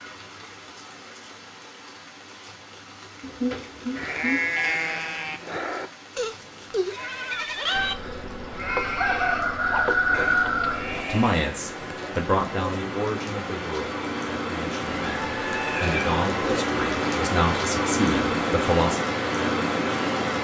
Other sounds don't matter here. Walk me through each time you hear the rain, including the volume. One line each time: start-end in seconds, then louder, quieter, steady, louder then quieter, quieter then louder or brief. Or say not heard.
0.0-20.3 louder.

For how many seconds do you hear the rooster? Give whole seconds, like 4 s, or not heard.
3 s.